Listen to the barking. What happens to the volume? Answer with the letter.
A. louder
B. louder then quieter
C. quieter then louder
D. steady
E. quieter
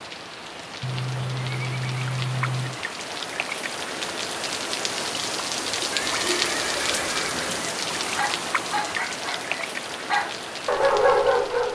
C.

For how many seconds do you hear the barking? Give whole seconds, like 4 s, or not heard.
4 s.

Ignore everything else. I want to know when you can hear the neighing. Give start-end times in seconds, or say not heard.
0.8-2.8, 5.9-7.8.